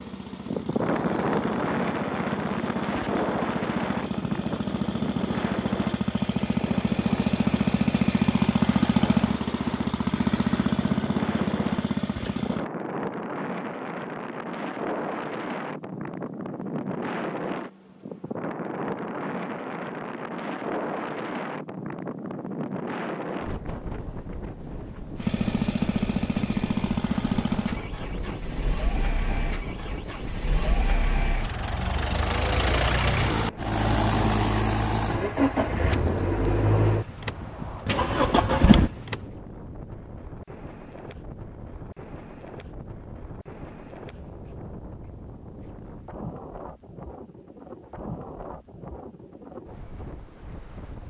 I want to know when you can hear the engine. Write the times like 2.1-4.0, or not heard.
0.0-12.7, 25.1-39.3.